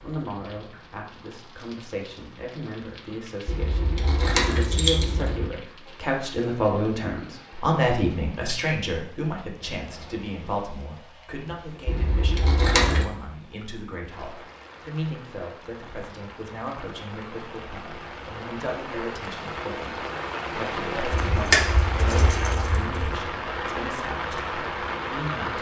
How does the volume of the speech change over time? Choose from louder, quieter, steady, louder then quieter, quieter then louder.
louder then quieter.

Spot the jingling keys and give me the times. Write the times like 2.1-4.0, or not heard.
3.5-5.5, 11.8-13.1, 21.1-23.2.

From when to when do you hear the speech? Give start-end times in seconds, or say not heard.
0.0-25.5.